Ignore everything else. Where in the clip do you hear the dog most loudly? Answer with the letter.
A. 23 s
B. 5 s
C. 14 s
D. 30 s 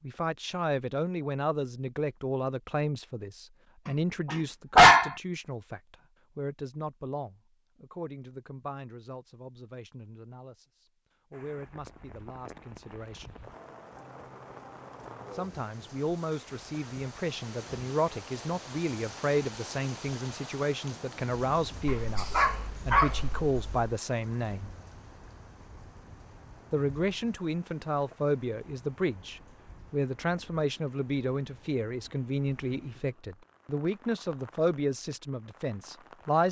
B.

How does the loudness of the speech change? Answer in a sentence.
The volume of the speech goes down, then up.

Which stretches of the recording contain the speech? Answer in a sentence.
You can hear the speech from 0.0 to 13.3 s, from 15.3 to 24.7 s and from 26.7 to 36.4 s.